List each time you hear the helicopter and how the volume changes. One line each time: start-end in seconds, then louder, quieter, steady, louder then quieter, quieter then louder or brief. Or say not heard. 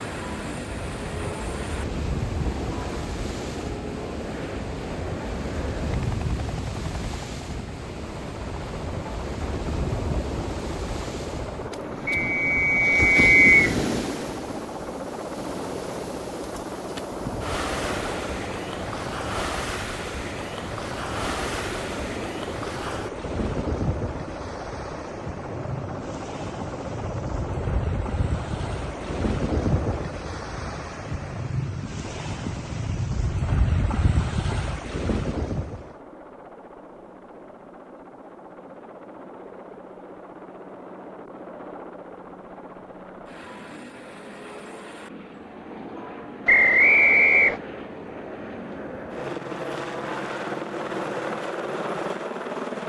0.0-52.8 quieter then louder.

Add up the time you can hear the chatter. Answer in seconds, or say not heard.
not heard.